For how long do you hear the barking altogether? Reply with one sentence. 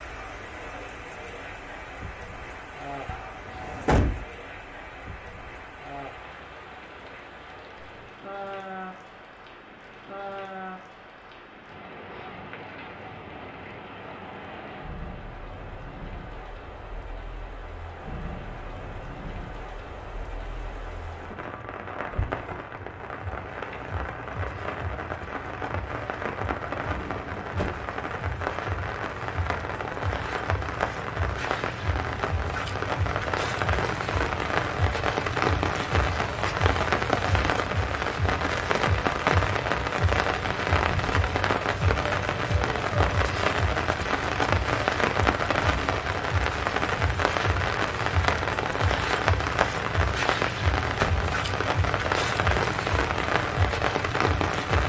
You can't hear the barking here.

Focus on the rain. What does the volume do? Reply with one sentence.
The volume of the rain goes up.